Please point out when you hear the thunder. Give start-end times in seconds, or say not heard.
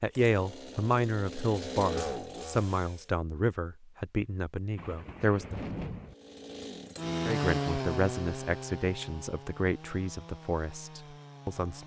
4.8-6.2.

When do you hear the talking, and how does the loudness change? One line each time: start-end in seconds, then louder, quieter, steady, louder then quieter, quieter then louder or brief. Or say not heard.
0.0-5.5 quieter
7.2-11.8 quieter.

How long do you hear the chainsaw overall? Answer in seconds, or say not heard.
9 s.